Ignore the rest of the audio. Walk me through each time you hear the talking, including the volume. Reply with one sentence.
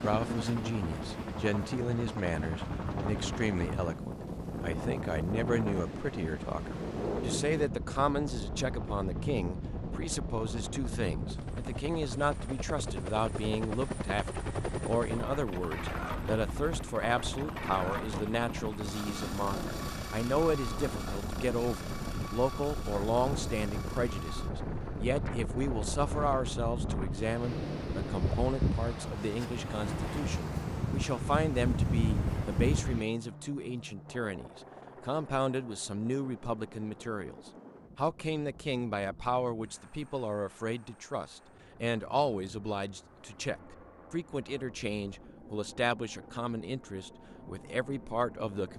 You can hear the talking from 0.0 to 48.7 s, at a steady volume.